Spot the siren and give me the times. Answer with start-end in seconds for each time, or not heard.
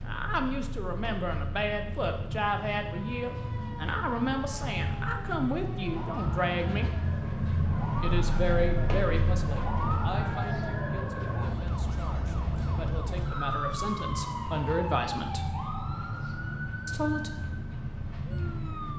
2.9-18.9.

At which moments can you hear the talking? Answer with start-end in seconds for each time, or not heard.
0.0-6.9, 8.0-15.4, 16.9-17.3.